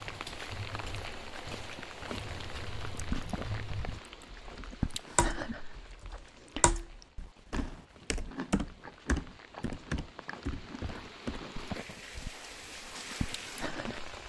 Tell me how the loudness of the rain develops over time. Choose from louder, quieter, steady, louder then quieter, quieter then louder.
quieter then louder.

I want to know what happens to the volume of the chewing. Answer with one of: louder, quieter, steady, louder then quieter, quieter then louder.
quieter then louder.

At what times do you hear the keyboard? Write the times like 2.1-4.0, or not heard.
0.0-11.4.